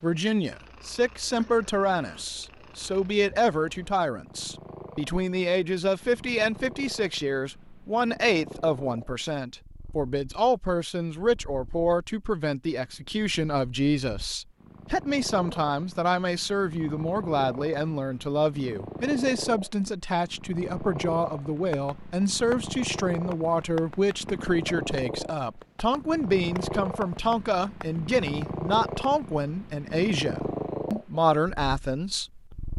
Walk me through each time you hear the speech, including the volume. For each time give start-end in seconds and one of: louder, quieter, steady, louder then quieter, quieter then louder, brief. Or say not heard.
0.0-32.7 steady.